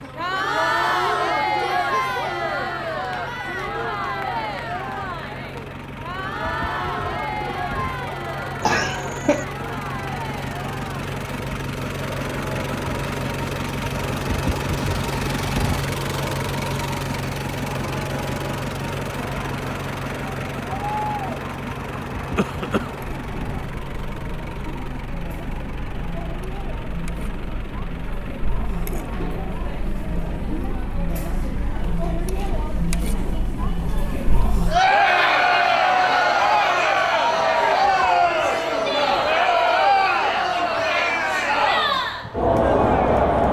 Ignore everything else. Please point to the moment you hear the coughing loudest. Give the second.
9 s.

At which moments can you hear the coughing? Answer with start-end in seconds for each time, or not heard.
8.6-9.4, 22.4-23.1.